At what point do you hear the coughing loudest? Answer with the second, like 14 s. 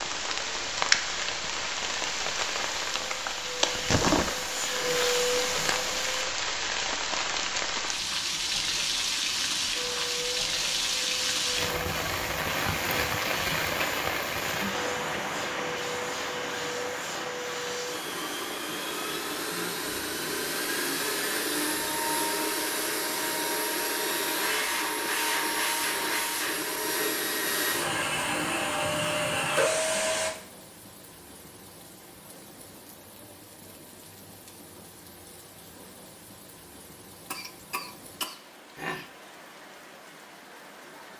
39 s.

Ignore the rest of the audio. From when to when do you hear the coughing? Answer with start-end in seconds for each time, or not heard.
37.3-39.1.